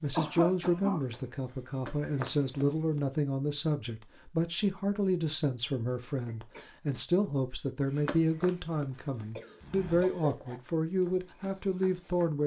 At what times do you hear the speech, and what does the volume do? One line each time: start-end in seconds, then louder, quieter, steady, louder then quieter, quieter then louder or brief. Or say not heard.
0.0-12.4 steady.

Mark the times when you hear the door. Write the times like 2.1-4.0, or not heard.
not heard.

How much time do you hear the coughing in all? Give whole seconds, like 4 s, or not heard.
3 s.